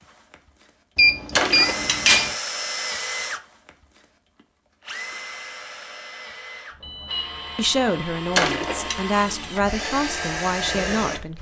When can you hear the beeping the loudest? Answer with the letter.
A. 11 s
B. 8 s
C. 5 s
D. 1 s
D.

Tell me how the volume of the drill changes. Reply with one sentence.
The loudness of the drill goes down, then up.